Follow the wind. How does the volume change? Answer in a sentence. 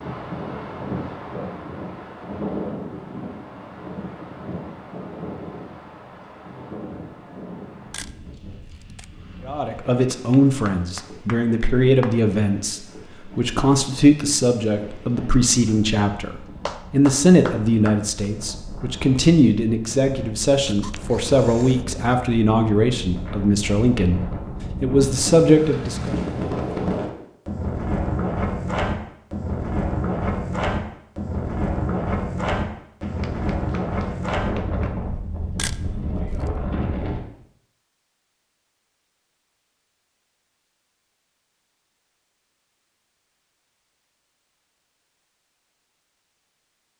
The loudness of the wind goes down, then up.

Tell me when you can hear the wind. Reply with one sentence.
You can hear the wind from 0.0 to 37.2 s.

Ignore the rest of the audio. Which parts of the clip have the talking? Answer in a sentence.
The talking can be heard from 9.4 to 26.1 s.